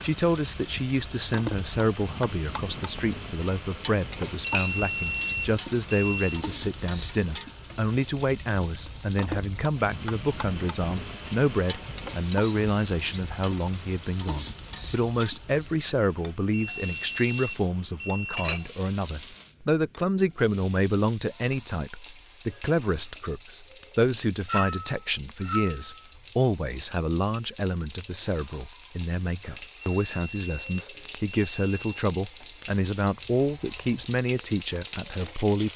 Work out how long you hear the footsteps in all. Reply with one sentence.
You can't hear the footsteps here.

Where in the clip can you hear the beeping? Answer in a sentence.
The beeping can be heard from 4.5 to 6.5 s, from 16.5 to 18.5 s and from 29.8 to 31.9 s.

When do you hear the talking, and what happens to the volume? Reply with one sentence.
The talking can be heard from 0.0 to 35.7 s, at a steady volume.